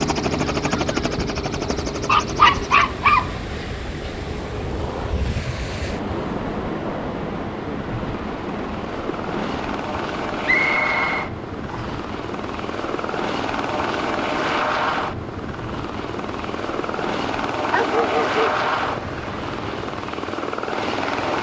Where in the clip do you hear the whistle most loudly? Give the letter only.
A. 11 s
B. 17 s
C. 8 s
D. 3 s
A.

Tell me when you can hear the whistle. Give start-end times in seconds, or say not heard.
10.4-12.1.